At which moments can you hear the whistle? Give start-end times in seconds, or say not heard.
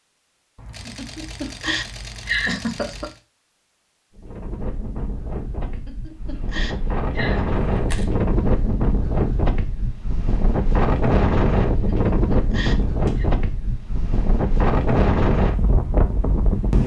not heard.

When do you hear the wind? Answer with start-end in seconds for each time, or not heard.
4.2-16.8.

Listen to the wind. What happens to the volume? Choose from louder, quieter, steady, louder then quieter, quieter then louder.
louder.